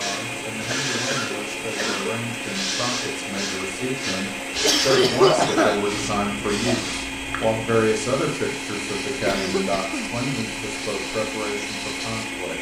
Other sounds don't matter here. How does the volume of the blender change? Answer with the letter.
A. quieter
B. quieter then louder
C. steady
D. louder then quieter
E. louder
C.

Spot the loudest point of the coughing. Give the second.
5 s.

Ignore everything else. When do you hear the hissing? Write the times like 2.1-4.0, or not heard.
0.0-12.4.